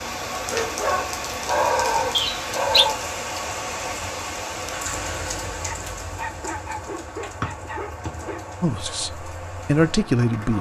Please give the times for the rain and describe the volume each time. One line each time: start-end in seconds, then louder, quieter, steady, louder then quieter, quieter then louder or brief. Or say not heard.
0.0-10.5 quieter.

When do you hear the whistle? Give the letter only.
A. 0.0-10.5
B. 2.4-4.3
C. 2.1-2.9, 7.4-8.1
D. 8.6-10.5
C.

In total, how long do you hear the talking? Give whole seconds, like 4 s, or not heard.
2 s.